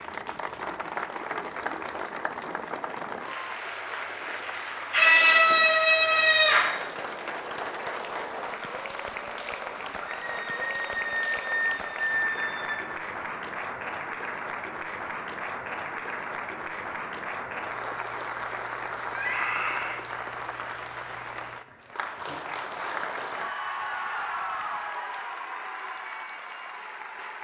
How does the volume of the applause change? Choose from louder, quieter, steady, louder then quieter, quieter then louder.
steady.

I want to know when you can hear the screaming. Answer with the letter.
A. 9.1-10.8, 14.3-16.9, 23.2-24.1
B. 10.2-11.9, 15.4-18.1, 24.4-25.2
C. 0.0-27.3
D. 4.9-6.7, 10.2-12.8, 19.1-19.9
D.